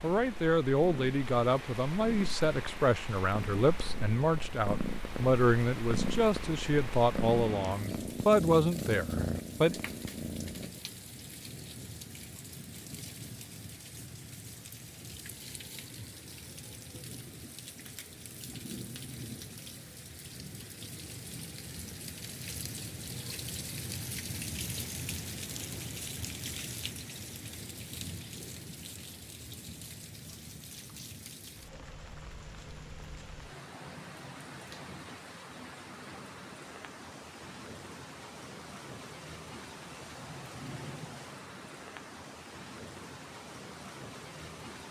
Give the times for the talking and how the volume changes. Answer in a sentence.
You can hear the talking from 0.0 to 9.8 s, at a steady volume.